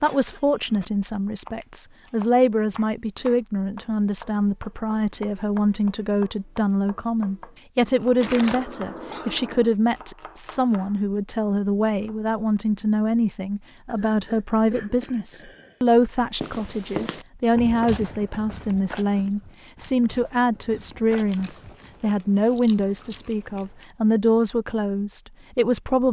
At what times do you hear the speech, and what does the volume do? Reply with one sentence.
The speech can be heard from 0.0 to 26.0 s, at a steady volume.